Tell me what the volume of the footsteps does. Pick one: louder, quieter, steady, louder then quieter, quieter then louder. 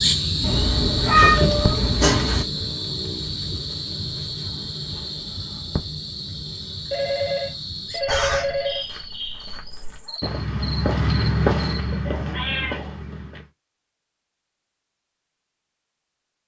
louder then quieter.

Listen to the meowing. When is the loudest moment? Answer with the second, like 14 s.
1 s.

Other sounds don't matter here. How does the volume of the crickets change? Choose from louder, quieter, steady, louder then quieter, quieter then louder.
quieter.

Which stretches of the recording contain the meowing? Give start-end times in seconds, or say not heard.
0.4-2.5, 8.1-8.7, 12.1-13.0.